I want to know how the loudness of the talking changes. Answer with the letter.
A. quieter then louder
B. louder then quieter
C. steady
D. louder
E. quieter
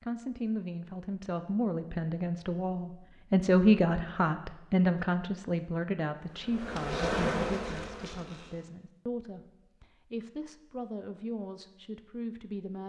B.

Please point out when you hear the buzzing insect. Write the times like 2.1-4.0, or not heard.
6.2-8.7.